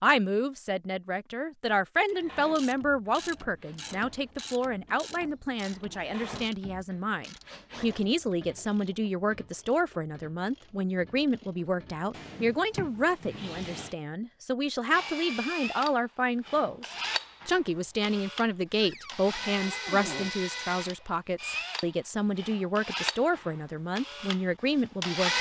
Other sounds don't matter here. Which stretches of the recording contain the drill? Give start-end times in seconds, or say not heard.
2.0-8.2, 14.9-25.3.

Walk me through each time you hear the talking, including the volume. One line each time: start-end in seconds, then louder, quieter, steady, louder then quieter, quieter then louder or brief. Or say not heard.
0.0-25.3 steady.